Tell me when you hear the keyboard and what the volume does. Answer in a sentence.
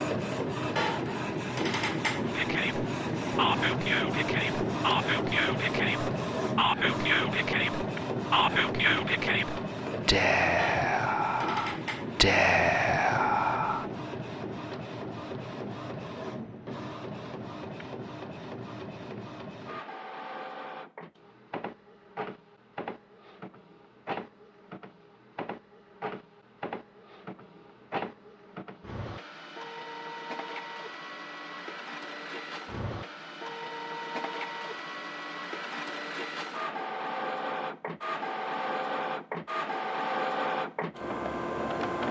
The keyboard can't be heard in this clip.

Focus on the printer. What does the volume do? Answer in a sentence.
The loudness of the printer goes down, then up.